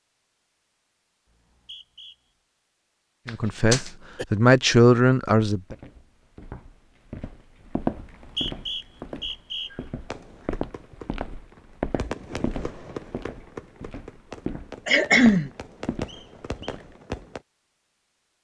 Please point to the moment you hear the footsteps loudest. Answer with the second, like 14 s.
8 s.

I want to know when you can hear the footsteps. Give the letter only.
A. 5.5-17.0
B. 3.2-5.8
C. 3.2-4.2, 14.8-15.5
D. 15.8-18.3
A.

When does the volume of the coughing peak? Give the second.
15 s.